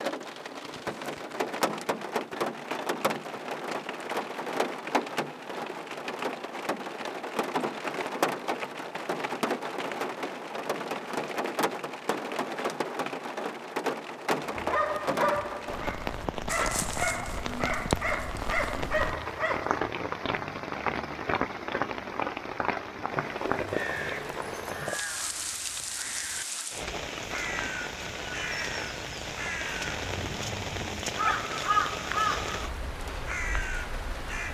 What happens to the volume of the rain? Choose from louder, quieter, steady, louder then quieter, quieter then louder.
steady.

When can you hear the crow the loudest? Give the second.
32 s.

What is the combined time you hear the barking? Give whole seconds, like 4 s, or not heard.
5 s.